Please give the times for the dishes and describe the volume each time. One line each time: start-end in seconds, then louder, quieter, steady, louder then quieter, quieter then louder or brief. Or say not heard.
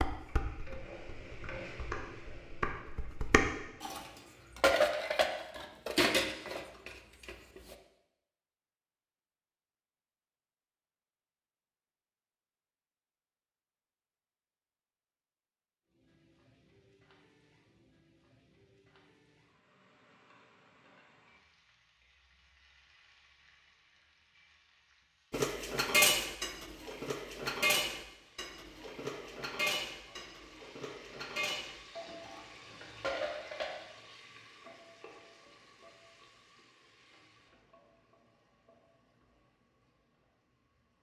0.0-7.8 louder
25.3-33.9 quieter.